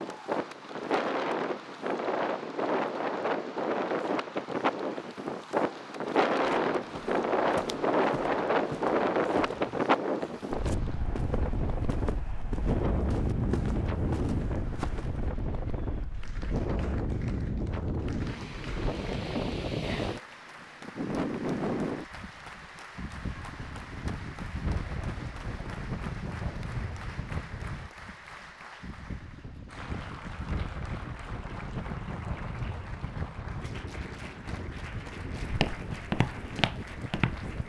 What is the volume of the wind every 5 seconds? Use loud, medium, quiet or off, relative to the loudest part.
loud, loud, medium, medium, medium, quiet, quiet, quiet.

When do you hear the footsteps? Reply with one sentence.
You can hear the footsteps from 6.5 to 15.3 s and from 35.4 to 37.5 s.